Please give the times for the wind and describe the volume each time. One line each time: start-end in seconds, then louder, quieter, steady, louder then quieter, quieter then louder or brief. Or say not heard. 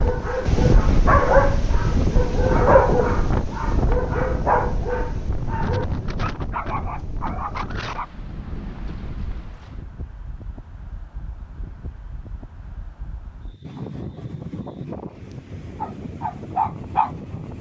0.0-17.5 quieter then louder.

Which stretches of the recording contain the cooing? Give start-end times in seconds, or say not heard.
not heard.